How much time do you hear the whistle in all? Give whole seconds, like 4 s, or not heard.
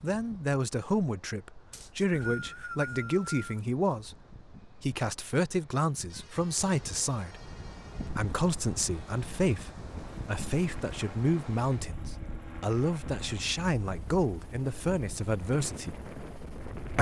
2 s.